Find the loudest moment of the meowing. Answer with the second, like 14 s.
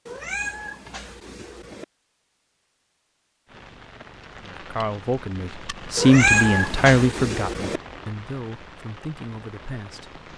6 s.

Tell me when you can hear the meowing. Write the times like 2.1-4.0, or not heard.
0.1-1.9, 6.0-7.8.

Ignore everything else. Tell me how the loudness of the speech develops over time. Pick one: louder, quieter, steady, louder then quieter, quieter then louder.
louder then quieter.